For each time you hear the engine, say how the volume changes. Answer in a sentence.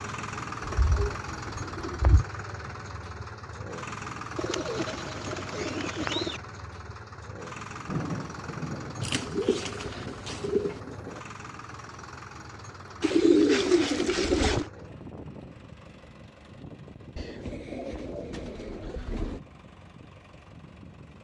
You can hear the engine from 0.0 to 21.1 s, getting quieter.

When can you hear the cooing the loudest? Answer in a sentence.
The loudest moment of the cooing is at 13 seconds.